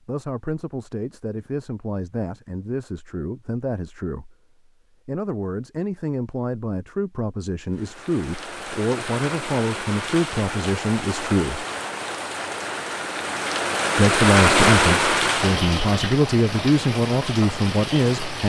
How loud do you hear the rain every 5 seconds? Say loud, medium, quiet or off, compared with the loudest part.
off, medium, loud, loud.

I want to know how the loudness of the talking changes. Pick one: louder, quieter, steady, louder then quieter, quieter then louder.
louder.